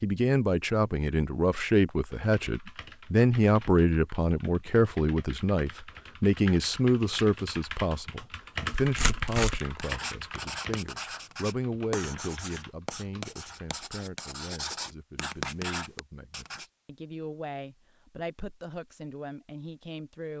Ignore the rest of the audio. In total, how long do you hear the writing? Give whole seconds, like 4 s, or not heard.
7 s.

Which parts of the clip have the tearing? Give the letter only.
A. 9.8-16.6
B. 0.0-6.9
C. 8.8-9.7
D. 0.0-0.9
C.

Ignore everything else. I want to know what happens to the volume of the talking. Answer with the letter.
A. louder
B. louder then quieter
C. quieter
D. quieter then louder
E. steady
C.